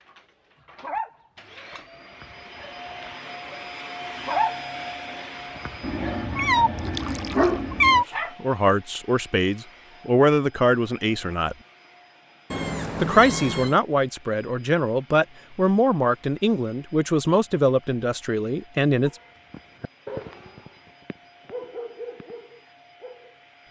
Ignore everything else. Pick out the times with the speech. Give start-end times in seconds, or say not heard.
8.4-11.6, 13.0-19.1.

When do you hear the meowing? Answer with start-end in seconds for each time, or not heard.
5.8-8.1, 12.5-13.8.